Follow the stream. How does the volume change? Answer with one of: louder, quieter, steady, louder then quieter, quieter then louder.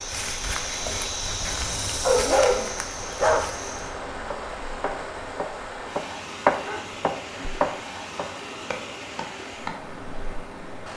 steady.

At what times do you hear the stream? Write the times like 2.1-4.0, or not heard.
0.0-10.9.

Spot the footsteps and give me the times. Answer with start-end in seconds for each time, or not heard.
0.0-4.0.